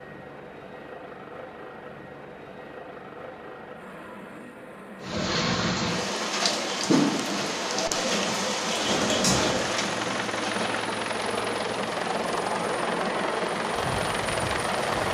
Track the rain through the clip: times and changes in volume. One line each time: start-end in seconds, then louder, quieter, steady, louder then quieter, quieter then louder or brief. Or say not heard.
5.0-15.0 quieter.